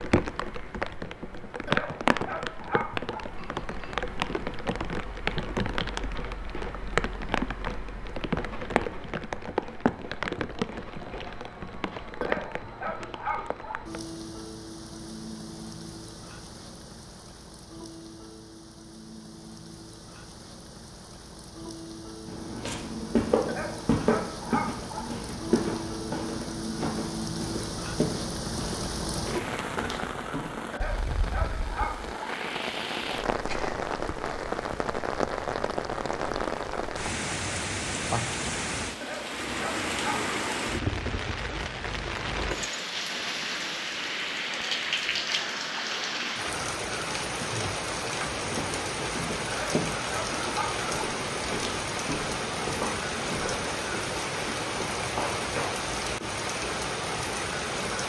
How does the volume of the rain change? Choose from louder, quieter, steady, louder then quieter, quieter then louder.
quieter then louder.